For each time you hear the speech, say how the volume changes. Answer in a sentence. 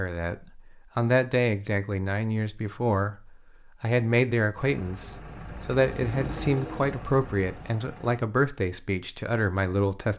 You can hear the speech from 0.0 to 10.1 s, at a steady volume.